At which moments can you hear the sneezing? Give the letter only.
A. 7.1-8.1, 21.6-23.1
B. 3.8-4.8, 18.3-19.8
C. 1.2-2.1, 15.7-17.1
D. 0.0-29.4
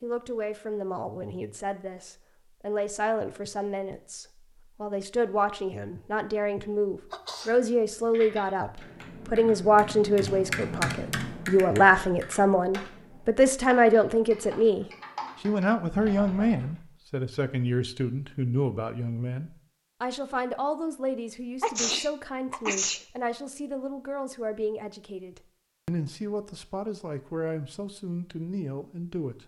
A.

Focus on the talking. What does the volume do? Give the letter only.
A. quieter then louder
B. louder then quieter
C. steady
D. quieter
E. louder
B.